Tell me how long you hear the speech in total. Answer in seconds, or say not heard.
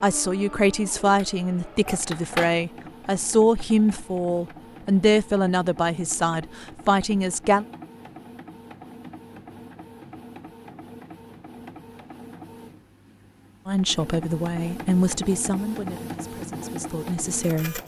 12 s.